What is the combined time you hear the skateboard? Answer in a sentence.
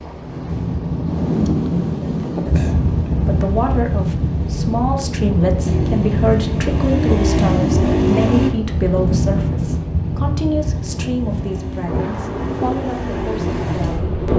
You can't hear the skateboard here.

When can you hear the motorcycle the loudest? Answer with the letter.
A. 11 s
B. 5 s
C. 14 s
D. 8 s
D.